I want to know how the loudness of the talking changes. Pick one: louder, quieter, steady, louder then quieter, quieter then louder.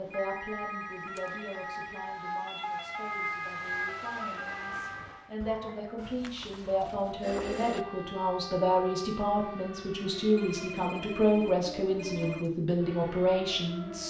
louder.